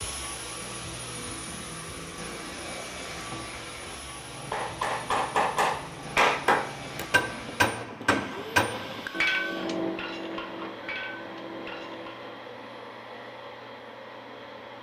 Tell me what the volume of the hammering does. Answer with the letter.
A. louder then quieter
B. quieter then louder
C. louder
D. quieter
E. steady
D.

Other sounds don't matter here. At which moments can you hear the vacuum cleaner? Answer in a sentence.
The vacuum cleaner can be heard from 0.0 to 14.7 s.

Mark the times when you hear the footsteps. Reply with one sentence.
You can't hear the footsteps here.